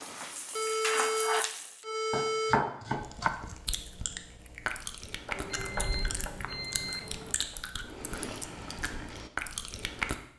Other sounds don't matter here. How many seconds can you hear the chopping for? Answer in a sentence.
The chopping can be heard for 3 seconds in total.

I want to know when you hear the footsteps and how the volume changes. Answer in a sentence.
The footsteps can't be heard in this clip.